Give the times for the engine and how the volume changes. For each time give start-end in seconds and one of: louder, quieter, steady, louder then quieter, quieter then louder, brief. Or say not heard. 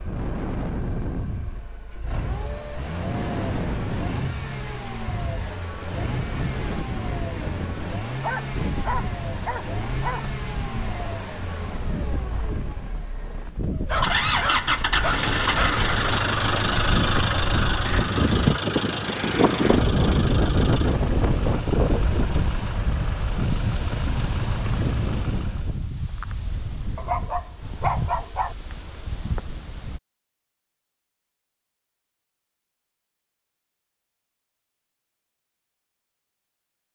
0.0-25.8 louder then quieter.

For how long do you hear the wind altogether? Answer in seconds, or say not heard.
30 s.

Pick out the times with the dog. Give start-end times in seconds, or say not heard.
8.2-10.2, 13.7-15.8, 26.9-28.6.